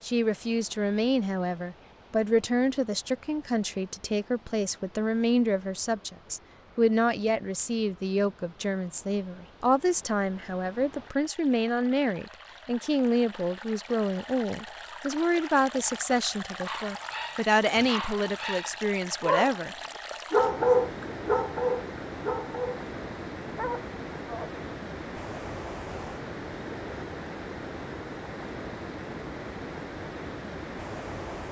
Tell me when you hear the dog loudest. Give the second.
21 s.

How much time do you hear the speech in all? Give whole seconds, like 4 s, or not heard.
20 s.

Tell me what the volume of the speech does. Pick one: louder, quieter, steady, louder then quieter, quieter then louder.
steady.